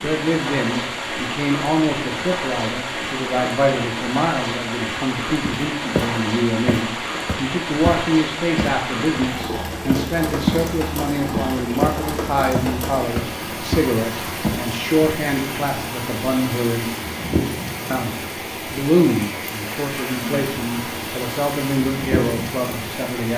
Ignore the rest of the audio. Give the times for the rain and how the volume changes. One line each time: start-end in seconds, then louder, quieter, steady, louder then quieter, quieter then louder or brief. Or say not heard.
0.0-23.3 steady.